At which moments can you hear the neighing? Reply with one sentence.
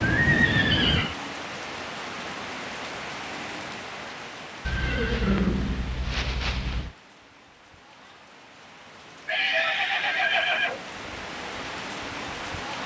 You can hear the neighing from 0.0 to 1.1 s, from 4.7 to 6.9 s and from 9.2 to 10.8 s.